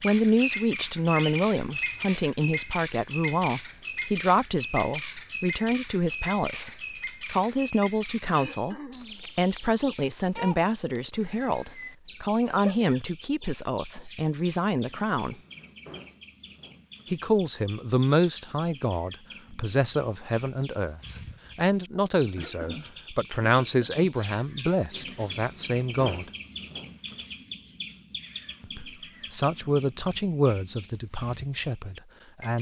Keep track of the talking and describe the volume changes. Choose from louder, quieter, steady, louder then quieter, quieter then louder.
steady.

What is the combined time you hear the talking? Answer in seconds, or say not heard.
28 s.